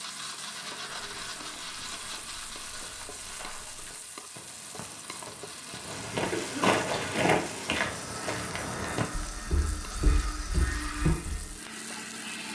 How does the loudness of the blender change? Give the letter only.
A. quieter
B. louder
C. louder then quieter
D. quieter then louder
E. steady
D.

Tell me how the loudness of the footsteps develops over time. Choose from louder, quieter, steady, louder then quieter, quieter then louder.
louder then quieter.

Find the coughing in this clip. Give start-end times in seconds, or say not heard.
6.3-7.2.